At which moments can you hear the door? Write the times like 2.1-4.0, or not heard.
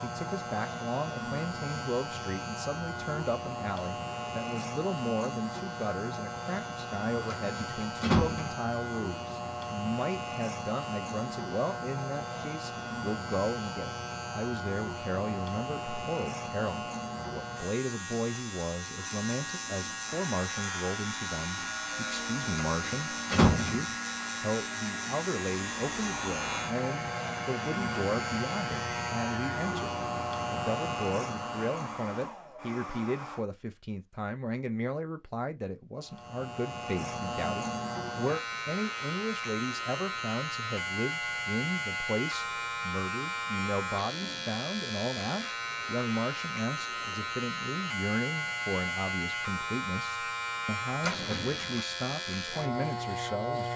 7.3-8.6, 22.8-23.9, 51.0-51.8.